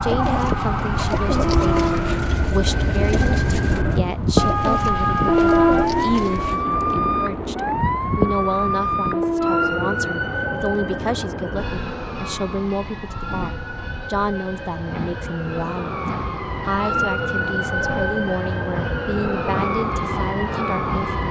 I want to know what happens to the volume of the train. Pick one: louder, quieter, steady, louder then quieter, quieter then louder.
quieter.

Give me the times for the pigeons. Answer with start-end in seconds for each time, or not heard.
0.0-6.6.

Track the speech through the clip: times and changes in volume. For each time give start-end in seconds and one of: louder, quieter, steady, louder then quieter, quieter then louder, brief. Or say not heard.
0.0-21.2 steady.